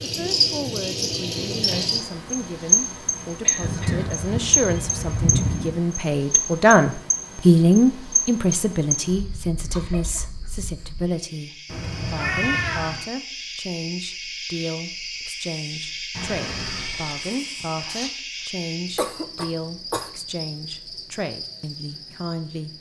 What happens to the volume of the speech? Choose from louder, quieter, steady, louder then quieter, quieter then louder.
louder then quieter.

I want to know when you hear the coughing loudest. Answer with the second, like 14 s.
19 s.